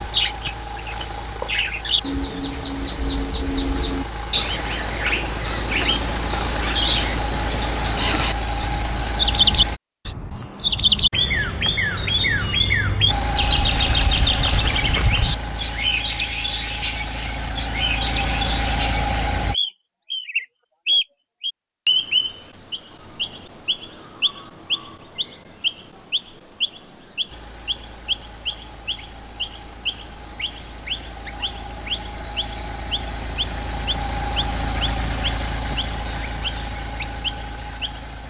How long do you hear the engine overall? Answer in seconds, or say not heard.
27 s.